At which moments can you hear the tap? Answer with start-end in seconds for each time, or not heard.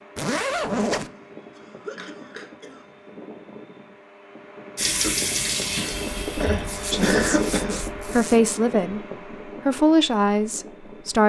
4.8-7.5.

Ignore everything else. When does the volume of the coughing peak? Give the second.
7 s.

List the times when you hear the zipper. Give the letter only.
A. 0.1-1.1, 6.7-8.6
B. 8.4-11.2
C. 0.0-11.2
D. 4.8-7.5
A.